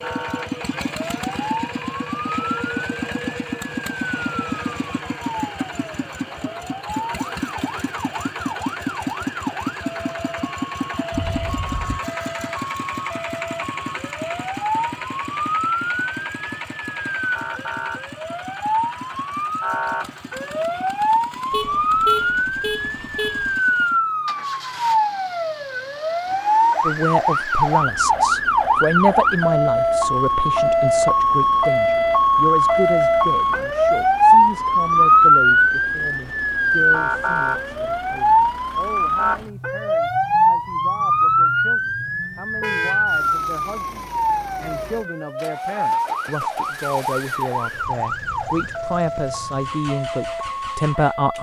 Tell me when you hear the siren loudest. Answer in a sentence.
The volume of the siren peaks at 35 seconds.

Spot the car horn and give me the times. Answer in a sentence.
The car horn can be heard from 11.1 to 12.0 s, from 21.5 to 23.6 s and from 42.6 to 43.0 s.